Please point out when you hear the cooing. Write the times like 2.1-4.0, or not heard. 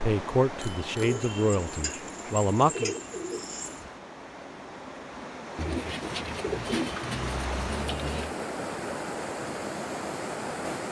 1.0-3.9, 5.5-8.3.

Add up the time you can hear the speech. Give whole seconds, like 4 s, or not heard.
3 s.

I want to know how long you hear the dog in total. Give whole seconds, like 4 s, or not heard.
not heard.